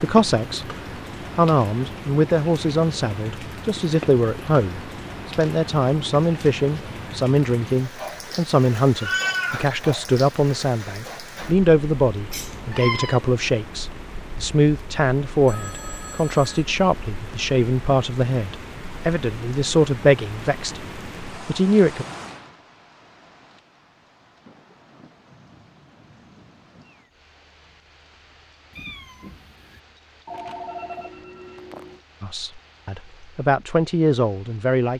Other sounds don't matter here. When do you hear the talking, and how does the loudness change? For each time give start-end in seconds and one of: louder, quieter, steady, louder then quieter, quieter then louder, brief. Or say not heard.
0.0-0.7 brief
1.4-22.1 steady
32.2-34.9 brief.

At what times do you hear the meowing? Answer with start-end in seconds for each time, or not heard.
8.9-9.8, 12.3-13.2, 28.7-29.8.